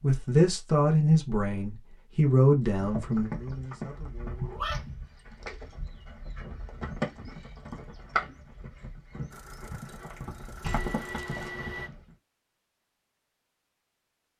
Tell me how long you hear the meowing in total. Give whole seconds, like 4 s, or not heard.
2 s.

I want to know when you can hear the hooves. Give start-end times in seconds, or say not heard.
2.6-12.2.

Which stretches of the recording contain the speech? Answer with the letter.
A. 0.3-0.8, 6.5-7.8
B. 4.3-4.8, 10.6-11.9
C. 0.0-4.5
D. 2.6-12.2
C.